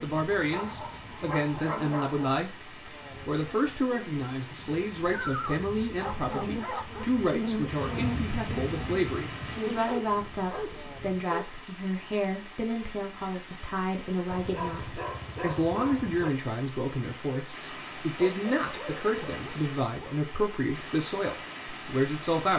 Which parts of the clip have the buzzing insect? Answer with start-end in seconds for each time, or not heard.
0.0-11.2.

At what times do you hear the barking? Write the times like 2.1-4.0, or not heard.
0.3-2.2, 5.0-7.0, 9.7-11.5, 14.3-16.3, 18.1-20.1.